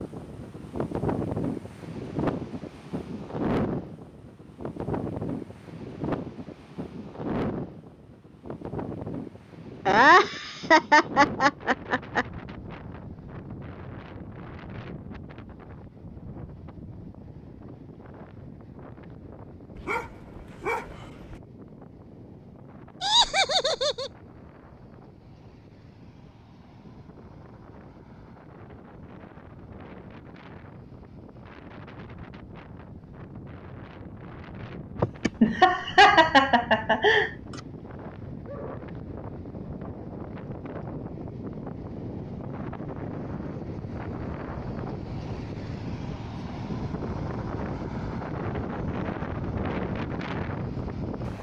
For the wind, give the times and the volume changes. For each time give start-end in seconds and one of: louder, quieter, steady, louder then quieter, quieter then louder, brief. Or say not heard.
0.0-51.3 quieter then louder.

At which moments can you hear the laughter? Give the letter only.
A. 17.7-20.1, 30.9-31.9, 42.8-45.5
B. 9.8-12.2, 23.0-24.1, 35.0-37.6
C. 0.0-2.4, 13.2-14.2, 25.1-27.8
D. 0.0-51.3
B.